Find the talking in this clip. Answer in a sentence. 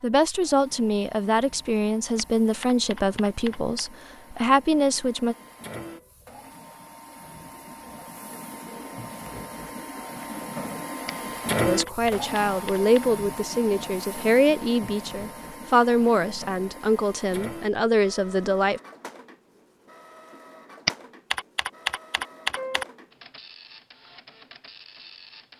The talking can be heard from 0.0 to 5.3 s and from 11.7 to 18.8 s.